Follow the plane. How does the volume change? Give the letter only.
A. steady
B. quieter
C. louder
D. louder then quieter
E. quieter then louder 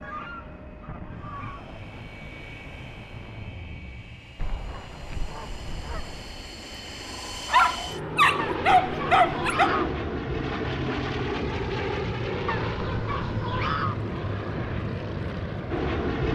C.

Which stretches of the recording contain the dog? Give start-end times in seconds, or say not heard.
7.5-9.7.